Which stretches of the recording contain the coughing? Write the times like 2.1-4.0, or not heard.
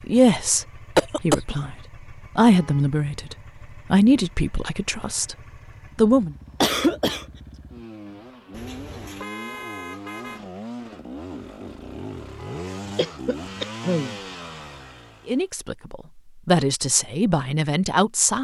0.9-1.6, 6.6-7.2, 12.9-14.2.